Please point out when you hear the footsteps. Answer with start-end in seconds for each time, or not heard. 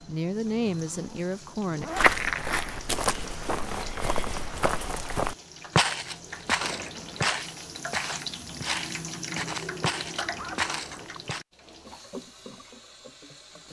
1.9-11.4.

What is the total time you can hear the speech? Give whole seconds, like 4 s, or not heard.
2 s.